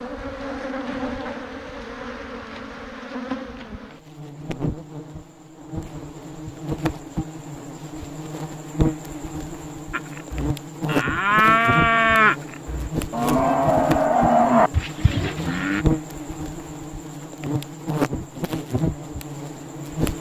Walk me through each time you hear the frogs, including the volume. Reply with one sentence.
You can't hear the frogs here.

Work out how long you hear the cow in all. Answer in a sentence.
The cow can be heard for 6 seconds in total.